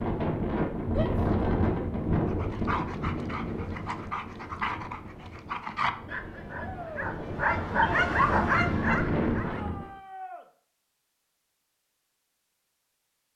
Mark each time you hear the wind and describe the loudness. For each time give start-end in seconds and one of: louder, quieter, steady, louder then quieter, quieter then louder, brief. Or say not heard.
0.0-9.9 quieter then louder.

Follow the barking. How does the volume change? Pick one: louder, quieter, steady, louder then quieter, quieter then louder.
louder.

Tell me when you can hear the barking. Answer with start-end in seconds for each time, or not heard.
2.2-9.7.